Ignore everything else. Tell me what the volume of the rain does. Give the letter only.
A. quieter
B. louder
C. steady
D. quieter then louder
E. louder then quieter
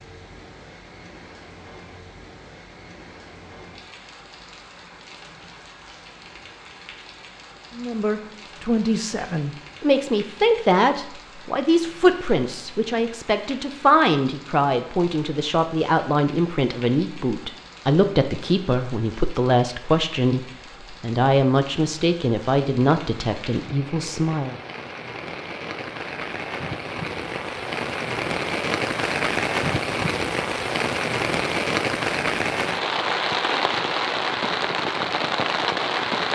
B.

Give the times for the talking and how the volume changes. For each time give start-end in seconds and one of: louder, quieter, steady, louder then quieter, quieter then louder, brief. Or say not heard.
7.8-24.6 steady.